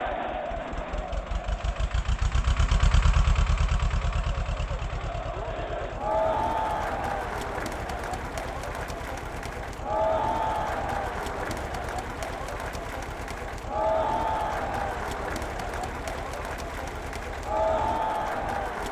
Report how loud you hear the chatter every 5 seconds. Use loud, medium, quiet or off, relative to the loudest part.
medium, loud, loud, loud.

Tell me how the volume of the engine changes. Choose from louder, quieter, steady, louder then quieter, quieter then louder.
quieter.